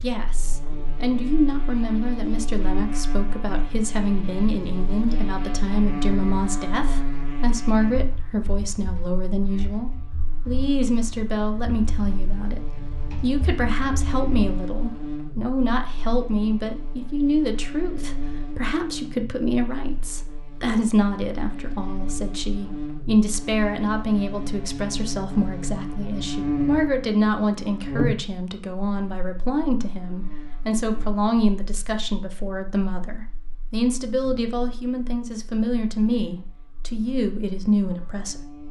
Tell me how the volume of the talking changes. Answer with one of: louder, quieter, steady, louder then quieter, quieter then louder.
steady.